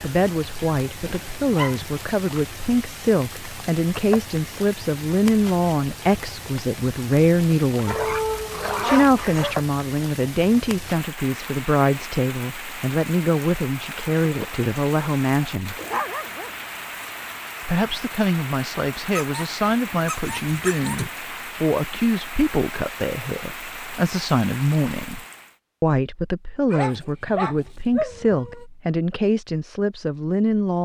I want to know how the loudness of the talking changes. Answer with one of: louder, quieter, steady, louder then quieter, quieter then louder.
steady.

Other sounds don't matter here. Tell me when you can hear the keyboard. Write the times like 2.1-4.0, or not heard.
not heard.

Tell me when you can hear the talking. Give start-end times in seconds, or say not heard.
0.0-8.2, 8.8-15.8, 17.6-30.8.